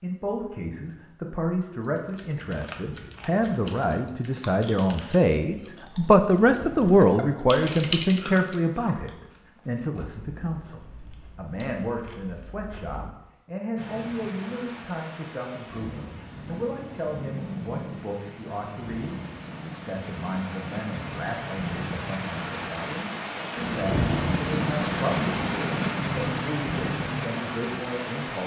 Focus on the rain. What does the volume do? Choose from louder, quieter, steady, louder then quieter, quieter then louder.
louder.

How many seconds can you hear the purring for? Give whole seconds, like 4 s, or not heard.
not heard.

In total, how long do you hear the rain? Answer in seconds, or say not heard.
15 s.